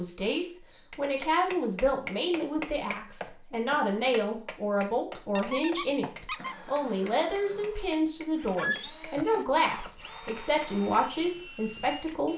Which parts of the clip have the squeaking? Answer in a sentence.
The squeaking can be heard from 0.7 to 1.6 s, from 5.3 to 6.5 s and from 8.6 to 9.0 s.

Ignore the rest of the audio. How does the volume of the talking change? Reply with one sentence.
The volume of the talking stays about the same.